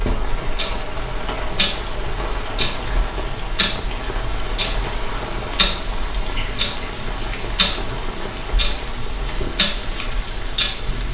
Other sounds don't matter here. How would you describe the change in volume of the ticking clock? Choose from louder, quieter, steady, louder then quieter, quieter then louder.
steady.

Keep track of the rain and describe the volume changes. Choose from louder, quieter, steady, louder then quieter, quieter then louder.
steady.